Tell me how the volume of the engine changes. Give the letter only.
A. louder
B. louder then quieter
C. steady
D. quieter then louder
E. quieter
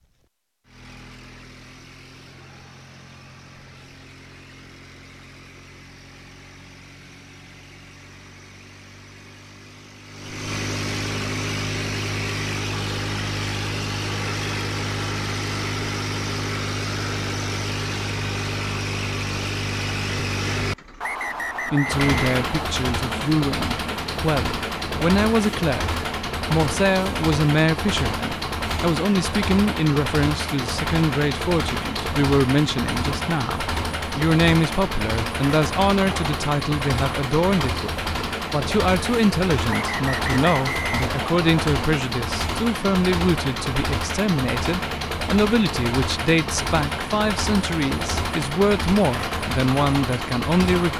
A.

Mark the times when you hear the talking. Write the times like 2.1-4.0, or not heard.
21.6-50.9.